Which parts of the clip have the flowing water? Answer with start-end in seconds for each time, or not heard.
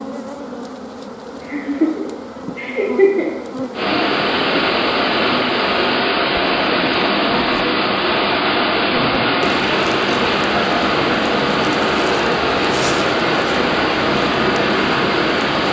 3.7-15.6.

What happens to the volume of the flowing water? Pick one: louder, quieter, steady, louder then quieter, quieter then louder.
steady.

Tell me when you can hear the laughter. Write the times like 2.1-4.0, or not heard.
1.4-3.3.